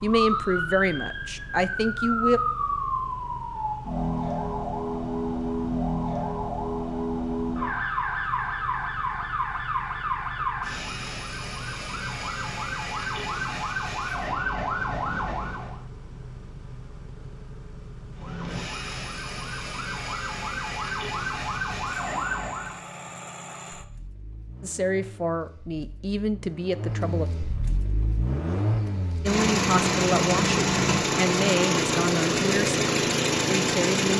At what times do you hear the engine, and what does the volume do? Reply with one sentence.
The engine can be heard from 0.0 to 34.1 s, getting louder.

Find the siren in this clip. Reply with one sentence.
You can hear the siren from 0.0 to 15.8 s and from 18.1 to 22.9 s.